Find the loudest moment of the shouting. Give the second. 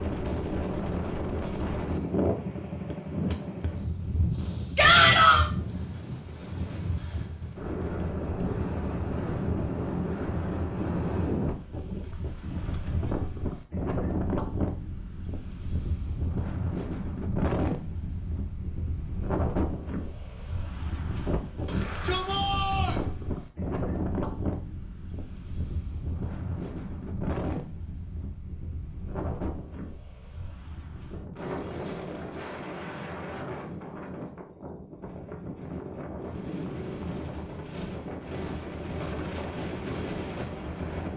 5 s.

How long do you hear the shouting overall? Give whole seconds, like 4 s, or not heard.
2 s.